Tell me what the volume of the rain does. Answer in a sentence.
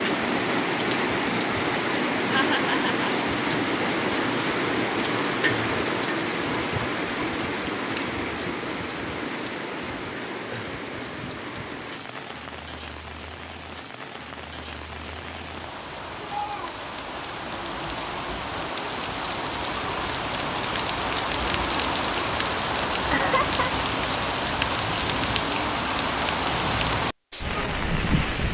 The loudness of the rain goes down, then up.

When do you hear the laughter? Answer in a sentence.
You can hear the laughter from 2.3 to 3.1 s and from 23.1 to 23.7 s.